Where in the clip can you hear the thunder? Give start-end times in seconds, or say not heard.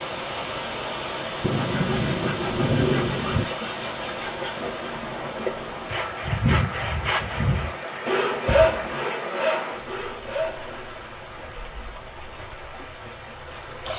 1.4-3.5.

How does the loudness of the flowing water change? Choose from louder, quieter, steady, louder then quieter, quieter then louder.
quieter.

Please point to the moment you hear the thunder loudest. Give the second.
3 s.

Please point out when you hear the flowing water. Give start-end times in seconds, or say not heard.
0.0-13.9.